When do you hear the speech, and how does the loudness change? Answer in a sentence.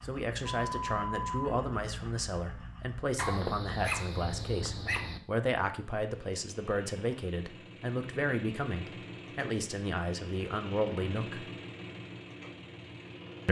You can hear the speech from 0.0 to 11.4 s, at a steady volume.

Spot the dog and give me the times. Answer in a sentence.
You can hear the dog from 3.1 to 5.2 s.